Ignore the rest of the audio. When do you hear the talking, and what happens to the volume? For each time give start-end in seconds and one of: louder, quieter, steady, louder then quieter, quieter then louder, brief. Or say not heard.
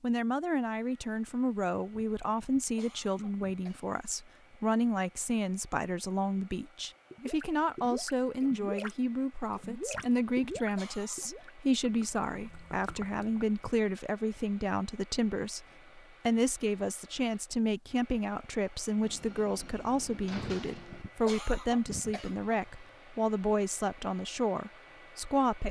0.0-25.6 steady.